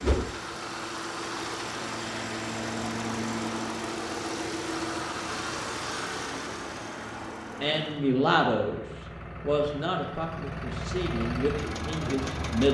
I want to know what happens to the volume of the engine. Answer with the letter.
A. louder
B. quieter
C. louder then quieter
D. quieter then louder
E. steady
D.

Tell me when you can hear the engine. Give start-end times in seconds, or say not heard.
0.0-12.6.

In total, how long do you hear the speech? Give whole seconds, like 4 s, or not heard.
5 s.